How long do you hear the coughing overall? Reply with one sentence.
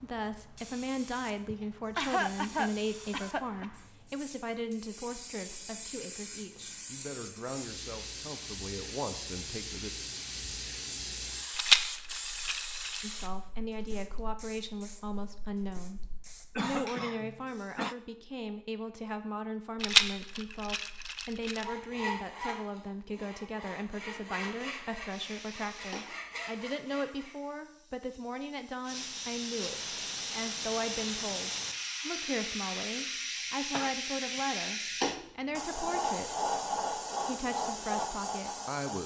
You can hear the coughing for 4 seconds altogether.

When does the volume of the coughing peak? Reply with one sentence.
The volume of the coughing peaks at 2 seconds.